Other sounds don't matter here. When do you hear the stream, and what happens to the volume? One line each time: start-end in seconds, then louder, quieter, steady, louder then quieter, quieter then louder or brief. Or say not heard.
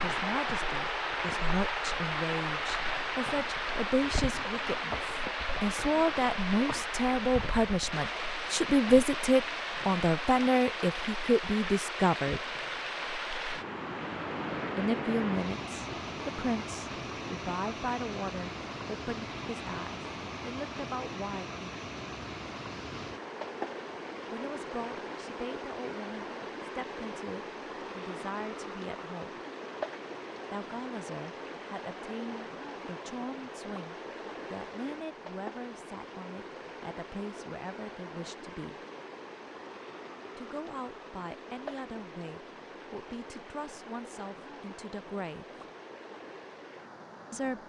0.0-47.6 quieter.